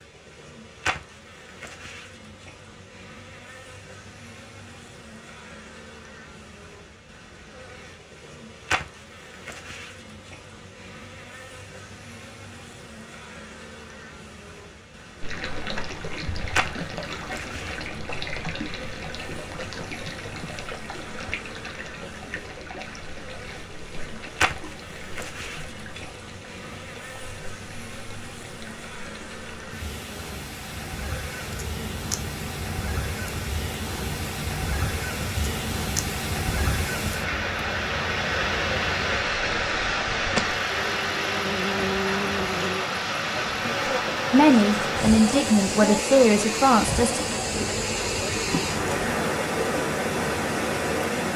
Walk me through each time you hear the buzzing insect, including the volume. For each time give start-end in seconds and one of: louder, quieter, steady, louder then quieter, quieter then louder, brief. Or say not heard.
0.0-51.2 louder.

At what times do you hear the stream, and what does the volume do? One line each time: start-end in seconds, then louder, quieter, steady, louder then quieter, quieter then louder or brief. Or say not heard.
15.2-51.3 quieter then louder.